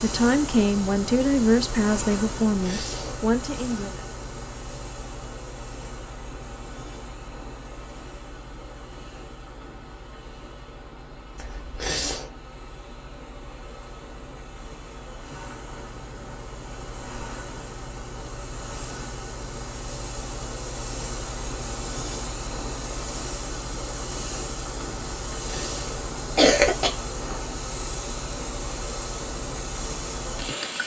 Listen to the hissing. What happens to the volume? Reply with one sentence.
The volume of the hissing goes down, then up.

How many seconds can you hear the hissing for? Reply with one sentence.
The hissing can be heard for 31 seconds in total.